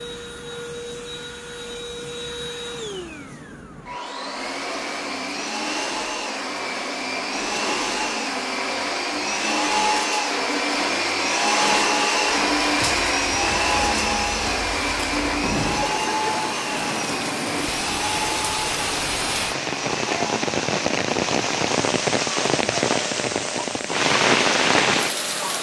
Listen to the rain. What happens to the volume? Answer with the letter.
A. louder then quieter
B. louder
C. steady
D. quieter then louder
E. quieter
B.